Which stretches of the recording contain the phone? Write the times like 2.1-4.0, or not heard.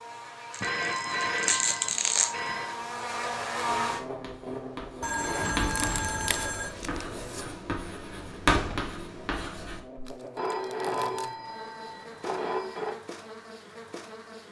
0.6-2.8, 5.0-6.8, 10.3-13.0.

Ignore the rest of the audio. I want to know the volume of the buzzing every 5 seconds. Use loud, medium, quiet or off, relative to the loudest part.
loud, medium, medium.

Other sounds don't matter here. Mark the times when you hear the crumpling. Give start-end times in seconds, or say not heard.
0.5-2.4, 5.7-7.5, 10.1-11.3.